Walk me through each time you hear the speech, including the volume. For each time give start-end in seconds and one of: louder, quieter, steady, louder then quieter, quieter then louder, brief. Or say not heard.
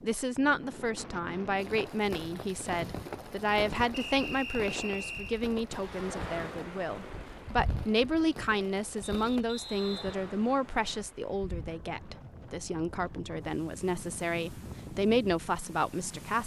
0.0-16.4 steady.